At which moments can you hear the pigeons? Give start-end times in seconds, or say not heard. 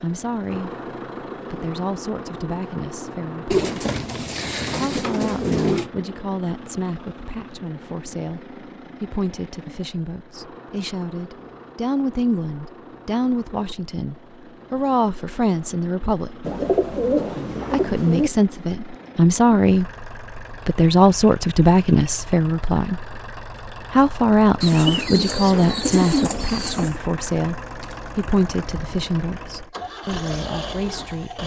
3.5-5.9, 16.4-18.3, 24.6-27.0.